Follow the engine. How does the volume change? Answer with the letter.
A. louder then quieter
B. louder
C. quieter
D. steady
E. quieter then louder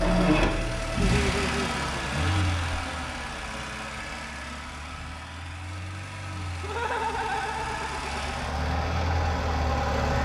E.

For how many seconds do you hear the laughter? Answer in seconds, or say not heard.
4 s.